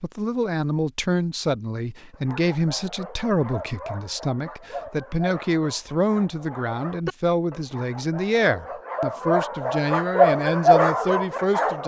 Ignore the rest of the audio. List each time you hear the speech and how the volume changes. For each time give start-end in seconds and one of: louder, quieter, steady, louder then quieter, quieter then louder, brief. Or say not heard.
0.0-11.8 steady.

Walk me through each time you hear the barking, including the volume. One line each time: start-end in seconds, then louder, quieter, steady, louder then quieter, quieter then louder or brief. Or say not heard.
2.1-11.8 louder.